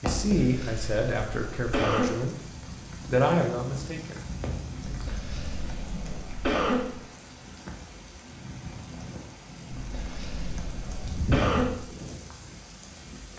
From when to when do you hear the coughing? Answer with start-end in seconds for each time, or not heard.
0.3-2.1, 4.8-6.8, 9.8-11.7.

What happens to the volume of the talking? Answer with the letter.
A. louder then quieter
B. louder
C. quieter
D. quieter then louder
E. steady
D.